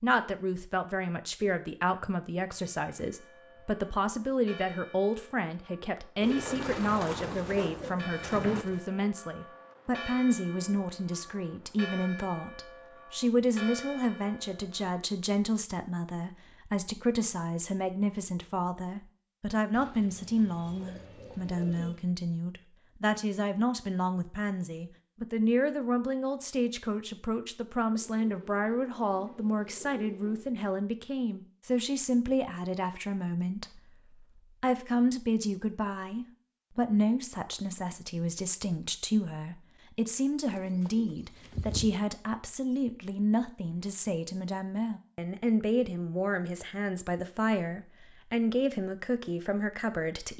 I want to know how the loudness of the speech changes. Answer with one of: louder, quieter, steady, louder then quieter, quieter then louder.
steady.